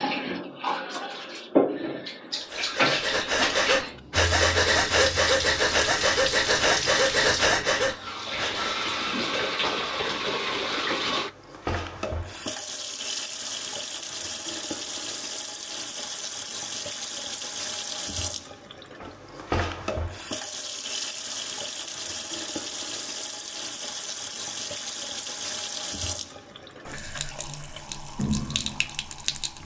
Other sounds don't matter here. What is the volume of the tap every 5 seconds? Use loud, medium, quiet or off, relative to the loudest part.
loud, loud, loud, medium, medium, medium.